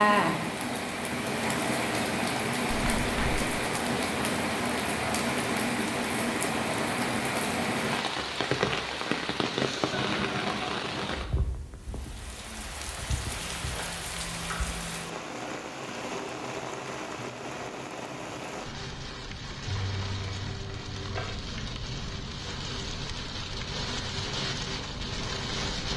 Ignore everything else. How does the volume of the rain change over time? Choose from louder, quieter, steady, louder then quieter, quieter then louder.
quieter.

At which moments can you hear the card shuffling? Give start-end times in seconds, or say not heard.
2.7-3.4, 13.3-15.1, 19.6-21.4.